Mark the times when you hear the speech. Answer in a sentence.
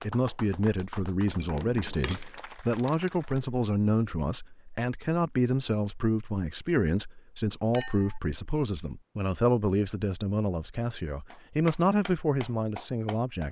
You can hear the speech from 0.0 to 13.4 s.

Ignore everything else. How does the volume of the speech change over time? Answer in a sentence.
The volume of the speech stays about the same.